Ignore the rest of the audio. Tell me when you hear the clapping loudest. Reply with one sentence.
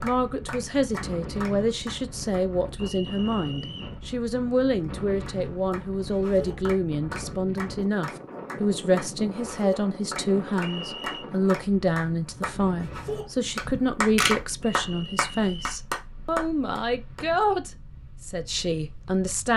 The loudest moment of the clapping is at 14 seconds.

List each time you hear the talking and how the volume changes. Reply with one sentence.
You can hear the talking from 0.0 to 19.5 s, at a steady volume.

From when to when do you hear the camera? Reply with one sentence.
The camera can be heard from 13.7 to 14.3 s.